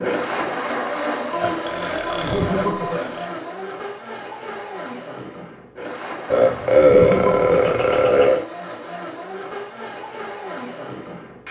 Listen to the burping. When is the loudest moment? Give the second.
7 s.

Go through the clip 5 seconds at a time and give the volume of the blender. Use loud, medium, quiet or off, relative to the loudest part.
loud, medium, medium.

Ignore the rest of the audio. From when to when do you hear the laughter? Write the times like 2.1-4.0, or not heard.
2.1-3.1, 6.8-8.4.